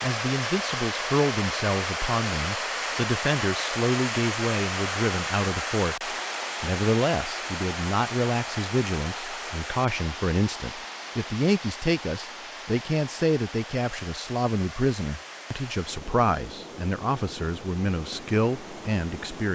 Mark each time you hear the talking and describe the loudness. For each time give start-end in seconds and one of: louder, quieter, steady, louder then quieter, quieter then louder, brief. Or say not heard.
0.0-19.5 steady.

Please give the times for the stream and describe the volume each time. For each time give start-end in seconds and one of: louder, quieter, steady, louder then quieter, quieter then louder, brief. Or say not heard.
0.0-19.5 quieter.